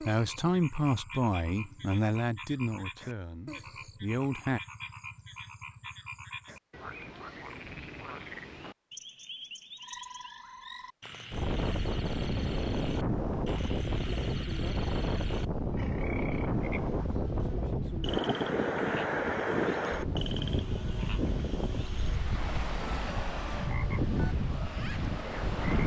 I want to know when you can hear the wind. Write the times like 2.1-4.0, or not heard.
11.3-25.8.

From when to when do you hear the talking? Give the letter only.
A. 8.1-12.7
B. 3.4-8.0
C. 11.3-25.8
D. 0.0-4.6
D.